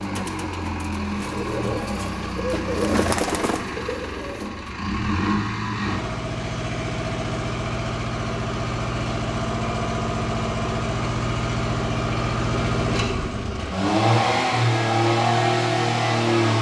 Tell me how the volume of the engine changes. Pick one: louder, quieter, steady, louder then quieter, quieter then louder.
louder.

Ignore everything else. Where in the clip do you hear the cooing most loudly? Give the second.
3 s.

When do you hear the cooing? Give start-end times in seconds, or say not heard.
0.0-4.7.